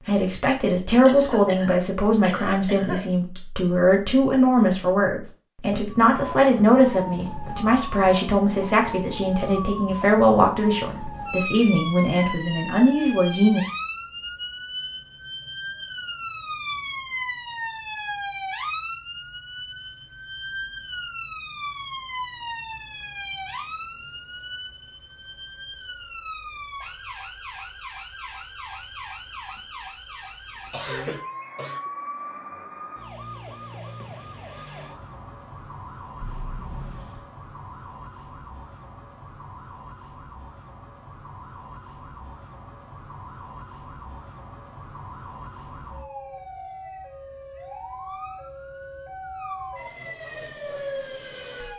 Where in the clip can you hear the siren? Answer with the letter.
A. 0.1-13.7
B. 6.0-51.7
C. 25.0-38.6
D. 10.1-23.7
B.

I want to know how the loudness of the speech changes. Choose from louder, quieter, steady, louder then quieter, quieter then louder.
steady.